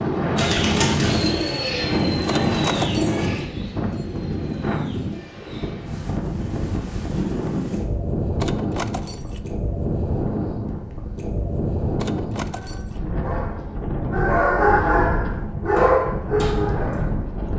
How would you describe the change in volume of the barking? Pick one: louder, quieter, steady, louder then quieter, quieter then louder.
louder then quieter.